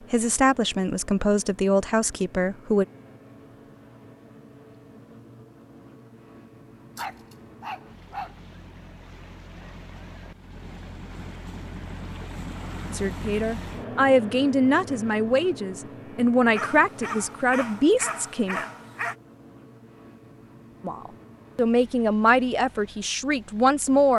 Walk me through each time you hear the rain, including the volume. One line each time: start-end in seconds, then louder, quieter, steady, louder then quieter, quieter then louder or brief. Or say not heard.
not heard.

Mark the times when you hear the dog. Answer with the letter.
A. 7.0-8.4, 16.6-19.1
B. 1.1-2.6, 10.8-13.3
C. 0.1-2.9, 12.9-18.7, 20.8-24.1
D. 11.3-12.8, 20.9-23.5
A.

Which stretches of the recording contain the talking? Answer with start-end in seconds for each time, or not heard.
0.1-2.9, 12.9-18.7, 20.8-24.1.